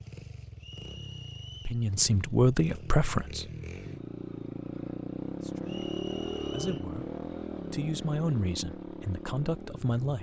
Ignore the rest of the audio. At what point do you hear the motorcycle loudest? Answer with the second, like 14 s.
6 s.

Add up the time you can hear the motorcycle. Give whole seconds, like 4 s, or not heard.
10 s.